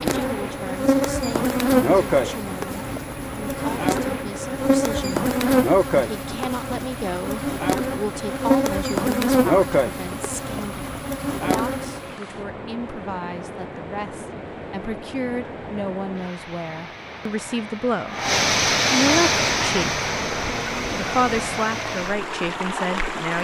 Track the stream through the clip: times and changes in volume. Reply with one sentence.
You can hear the stream from 0.0 to 23.3 s, getting louder.